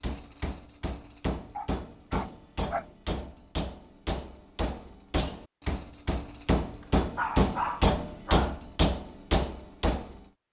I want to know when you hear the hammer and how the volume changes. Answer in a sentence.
The hammer can be heard from 0.0 to 10.2 s, getting louder.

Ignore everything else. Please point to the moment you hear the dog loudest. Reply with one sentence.
The loudest moment of the dog is at 8 seconds.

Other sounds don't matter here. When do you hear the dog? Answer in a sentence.
You can hear the dog from 1.6 to 2.9 s and from 6.8 to 8.6 s.